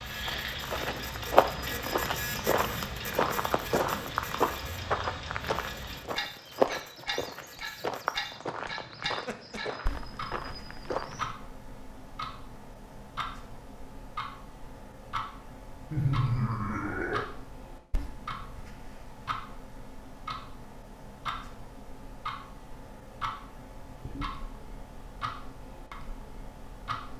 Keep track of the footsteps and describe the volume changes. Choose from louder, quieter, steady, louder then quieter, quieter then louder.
quieter.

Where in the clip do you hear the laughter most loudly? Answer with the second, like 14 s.
16 s.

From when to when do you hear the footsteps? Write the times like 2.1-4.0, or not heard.
0.2-11.3.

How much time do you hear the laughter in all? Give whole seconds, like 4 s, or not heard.
2 s.